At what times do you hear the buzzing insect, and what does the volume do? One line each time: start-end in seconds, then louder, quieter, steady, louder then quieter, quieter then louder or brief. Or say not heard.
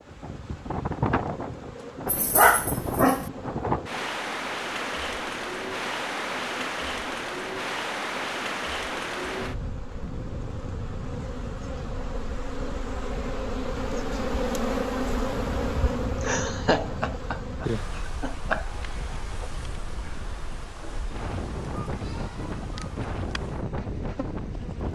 0.0-24.9 louder then quieter.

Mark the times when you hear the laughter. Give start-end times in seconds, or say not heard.
16.2-18.6.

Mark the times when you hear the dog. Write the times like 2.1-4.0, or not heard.
2.0-3.2.